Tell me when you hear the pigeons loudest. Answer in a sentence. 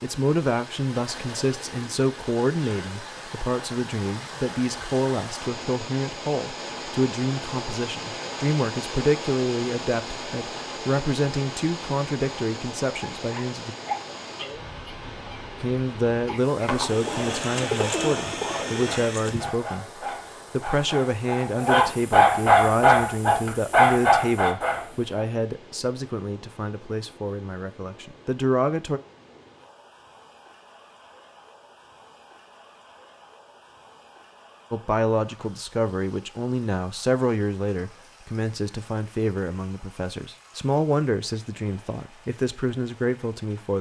The loudest moment of the pigeons is at 18 seconds.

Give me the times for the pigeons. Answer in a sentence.
You can hear the pigeons from 16.7 to 19.6 s.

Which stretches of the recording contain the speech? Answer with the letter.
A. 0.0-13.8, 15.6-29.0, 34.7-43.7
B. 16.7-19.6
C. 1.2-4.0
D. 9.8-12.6
A.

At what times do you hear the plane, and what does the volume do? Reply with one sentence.
You can't hear the plane here.